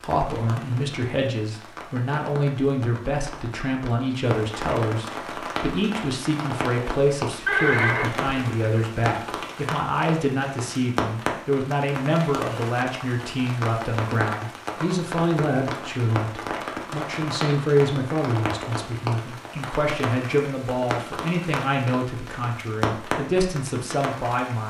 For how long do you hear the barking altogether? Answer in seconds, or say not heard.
not heard.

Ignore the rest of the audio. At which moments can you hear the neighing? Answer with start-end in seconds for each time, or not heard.
7.5-8.8.